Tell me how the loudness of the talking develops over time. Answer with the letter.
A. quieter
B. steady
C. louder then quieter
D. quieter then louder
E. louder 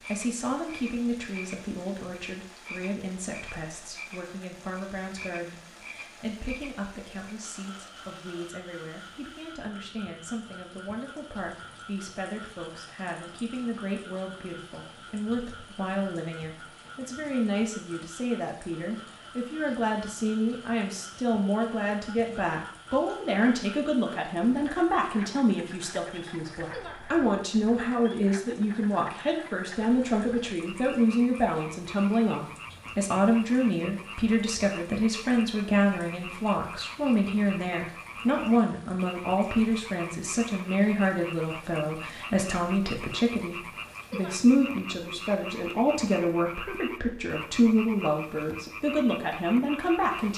E.